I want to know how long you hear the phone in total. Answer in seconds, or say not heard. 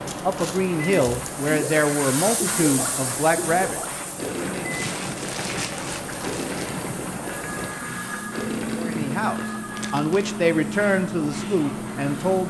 2 s.